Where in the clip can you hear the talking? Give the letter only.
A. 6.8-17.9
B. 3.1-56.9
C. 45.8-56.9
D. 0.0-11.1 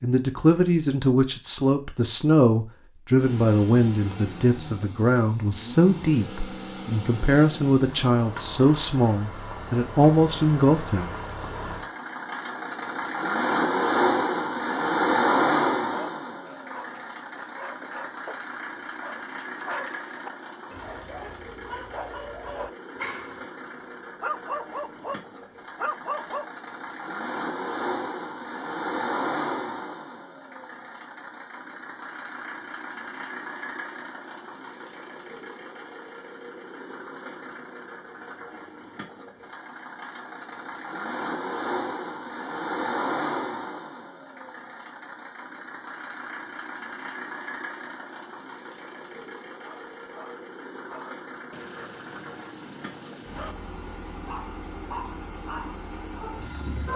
D.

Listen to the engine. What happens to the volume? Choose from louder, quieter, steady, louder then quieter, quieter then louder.
quieter.